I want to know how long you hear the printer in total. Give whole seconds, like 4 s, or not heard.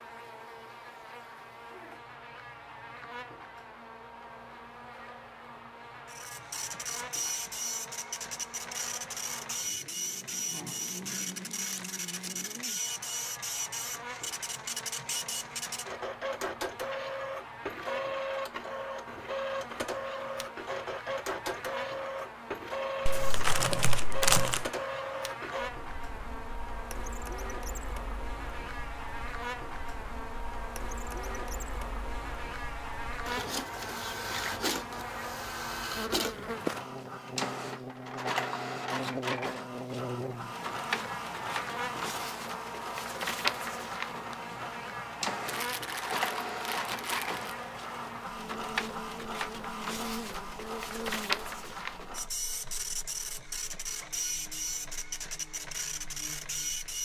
51 s.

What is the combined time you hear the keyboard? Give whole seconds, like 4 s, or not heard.
not heard.